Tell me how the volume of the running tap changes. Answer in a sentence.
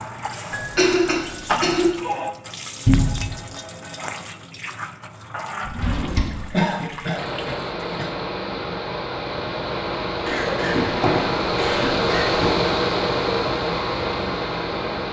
The loudness of the running tap goes down.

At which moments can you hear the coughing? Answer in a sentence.
The coughing can be heard from 0.5 to 1.9 s, from 6.5 to 8.1 s and from 10.2 to 12.2 s.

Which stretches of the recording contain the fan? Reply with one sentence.
You can hear the fan from 7.2 to 15.0 s.